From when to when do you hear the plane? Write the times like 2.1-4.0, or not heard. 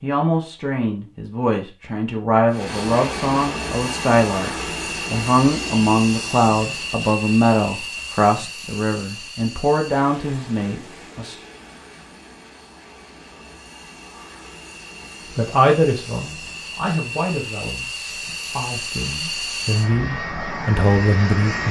2.5-21.6.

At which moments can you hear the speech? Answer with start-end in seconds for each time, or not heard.
0.0-4.5, 5.1-11.3, 15.3-21.6.